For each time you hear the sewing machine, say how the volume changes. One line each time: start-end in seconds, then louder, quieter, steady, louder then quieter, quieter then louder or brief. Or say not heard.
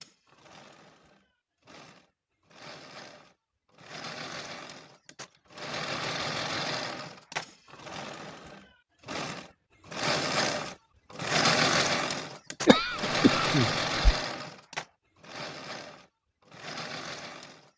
0.0-17.7 louder then quieter.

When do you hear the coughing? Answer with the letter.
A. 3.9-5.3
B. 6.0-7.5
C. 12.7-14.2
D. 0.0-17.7
C.